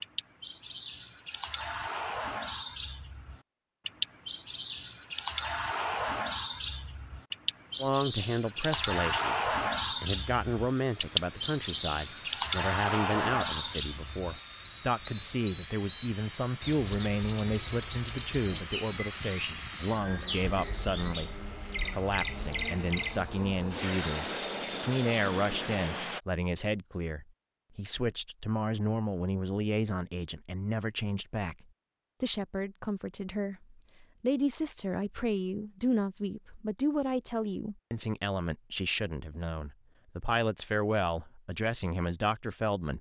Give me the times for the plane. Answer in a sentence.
The plane can be heard from 10.1 to 26.2 s.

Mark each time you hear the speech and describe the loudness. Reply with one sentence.
You can hear the speech from 7.8 to 42.9 s, at a steady volume.